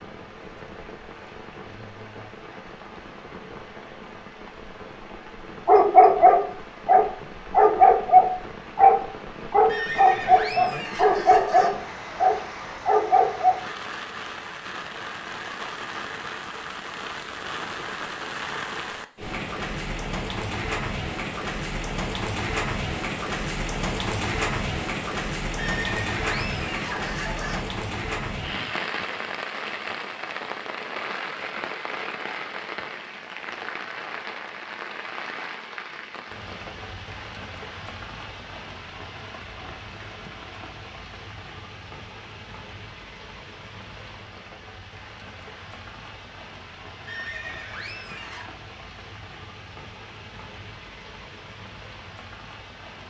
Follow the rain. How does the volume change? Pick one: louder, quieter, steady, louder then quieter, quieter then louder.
louder then quieter.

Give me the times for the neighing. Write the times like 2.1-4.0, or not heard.
9.7-11.7, 25.6-27.6, 47.0-48.5.